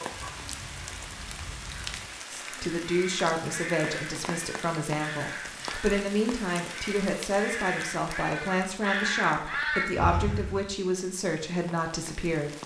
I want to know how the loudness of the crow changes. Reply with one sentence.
The volume of the crow goes up.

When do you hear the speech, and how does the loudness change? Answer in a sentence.
The speech can be heard from 2.3 to 12.5 s, at a steady volume.